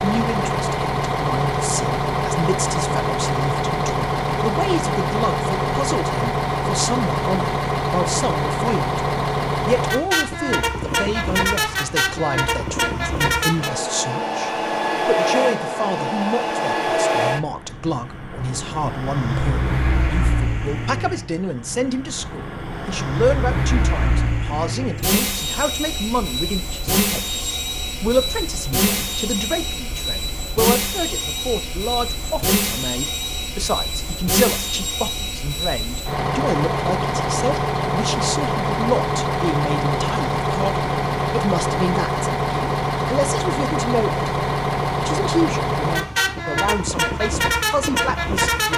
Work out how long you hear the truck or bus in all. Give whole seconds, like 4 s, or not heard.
49 s.